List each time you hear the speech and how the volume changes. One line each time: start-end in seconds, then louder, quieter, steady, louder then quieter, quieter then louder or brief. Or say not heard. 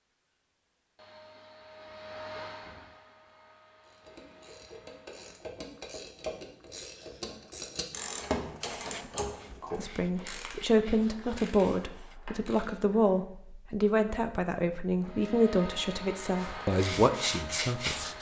9.8-18.0 steady.